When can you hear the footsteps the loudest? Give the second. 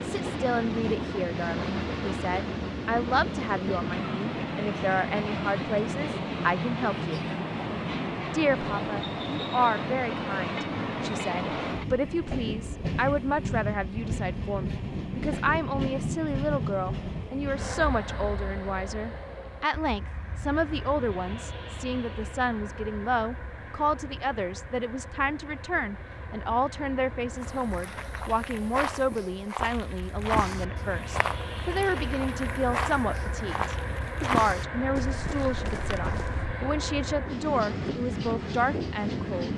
34 s.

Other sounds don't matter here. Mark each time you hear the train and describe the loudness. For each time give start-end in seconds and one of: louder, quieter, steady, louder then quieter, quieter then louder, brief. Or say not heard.
0.0-39.5 quieter then louder.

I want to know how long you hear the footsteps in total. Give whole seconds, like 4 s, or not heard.
9 s.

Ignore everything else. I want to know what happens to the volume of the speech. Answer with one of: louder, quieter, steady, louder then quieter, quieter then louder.
steady.